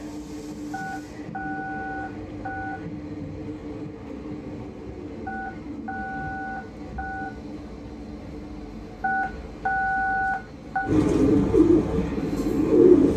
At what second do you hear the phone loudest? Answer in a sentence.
The volume of the phone peaks at 10 seconds.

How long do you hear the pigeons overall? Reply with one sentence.
You can hear the pigeons for 2 seconds altogether.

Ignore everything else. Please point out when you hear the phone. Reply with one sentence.
The phone can be heard from 0.7 to 2.8 s, from 5.2 to 7.3 s and from 9.0 to 10.8 s.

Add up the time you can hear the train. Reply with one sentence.
The train can be heard for 13 seconds in total.